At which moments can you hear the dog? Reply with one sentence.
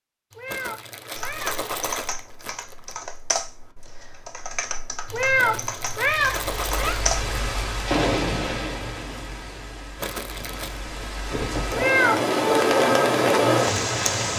You can't hear the dog here.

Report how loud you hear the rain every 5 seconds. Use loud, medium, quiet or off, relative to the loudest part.
off, medium, loud.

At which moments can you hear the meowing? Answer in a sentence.
You can hear the meowing from 0.3 to 1.6 s, from 5.0 to 7.0 s and from 11.7 to 12.3 s.